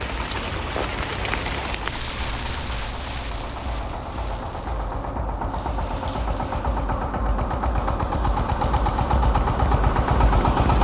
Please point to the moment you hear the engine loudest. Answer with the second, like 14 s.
10 s.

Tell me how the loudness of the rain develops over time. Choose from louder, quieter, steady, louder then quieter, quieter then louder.
quieter.